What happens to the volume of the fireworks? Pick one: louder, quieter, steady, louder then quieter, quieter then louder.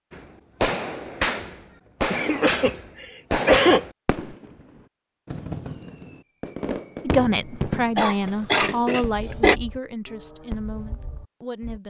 quieter.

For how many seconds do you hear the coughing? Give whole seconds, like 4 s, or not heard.
3 s.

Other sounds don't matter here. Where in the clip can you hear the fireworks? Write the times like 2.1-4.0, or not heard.
0.1-11.8.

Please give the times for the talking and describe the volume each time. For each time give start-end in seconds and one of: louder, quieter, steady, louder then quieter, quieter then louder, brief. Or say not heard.
7.0-11.8 quieter.